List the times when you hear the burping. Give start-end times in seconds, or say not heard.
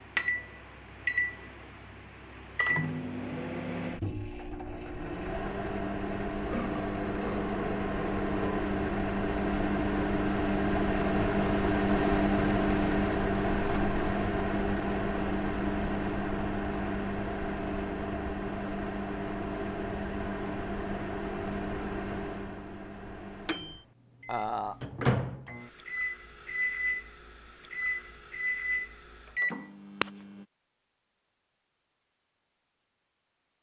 6.5-8.7, 24.2-24.8.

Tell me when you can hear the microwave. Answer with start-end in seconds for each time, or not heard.
0.0-30.4.